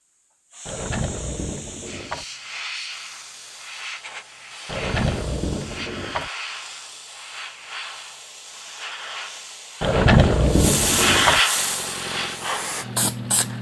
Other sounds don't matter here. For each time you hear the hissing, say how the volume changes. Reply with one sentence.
The hissing can be heard from 0.1 to 13.5 s, getting louder.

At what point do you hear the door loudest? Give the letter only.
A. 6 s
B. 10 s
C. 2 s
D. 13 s
B.